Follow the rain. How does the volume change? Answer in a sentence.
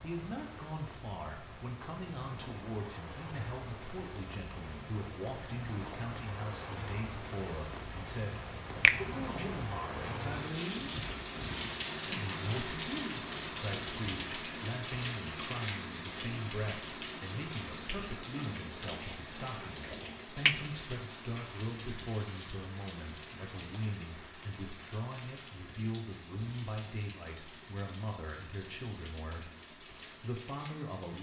The loudness of the rain goes up, then down.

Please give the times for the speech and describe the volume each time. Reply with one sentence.
You can hear the speech from 0.0 to 10.9 s, at a steady volume; and from 12.1 to 31.1 s, at a steady volume.